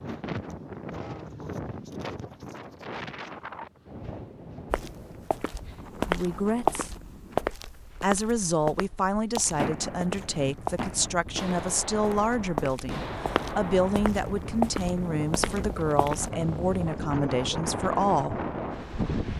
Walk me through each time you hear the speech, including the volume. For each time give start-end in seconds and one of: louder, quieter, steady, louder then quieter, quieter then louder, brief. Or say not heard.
6.0-6.9 brief
8.0-18.4 steady.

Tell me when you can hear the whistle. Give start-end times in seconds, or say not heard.
not heard.